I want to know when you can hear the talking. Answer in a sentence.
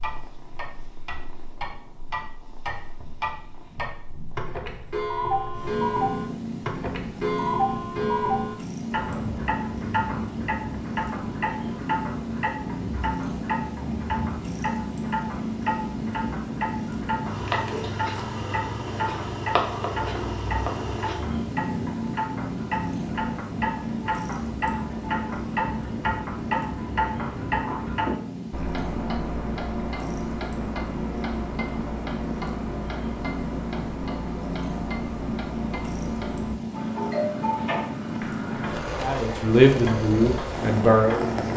You can hear the talking from 39.0 to 41.5 s.